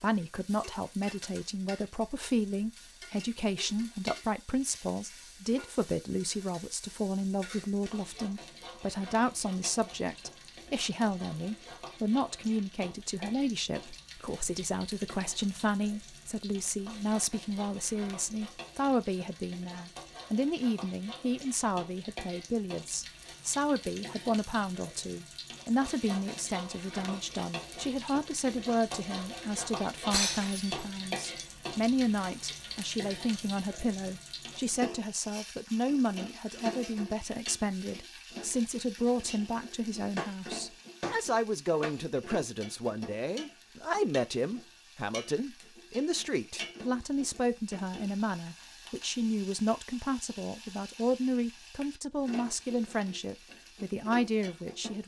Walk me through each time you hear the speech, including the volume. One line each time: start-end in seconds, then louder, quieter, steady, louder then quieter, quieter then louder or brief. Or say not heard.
0.0-55.0 steady.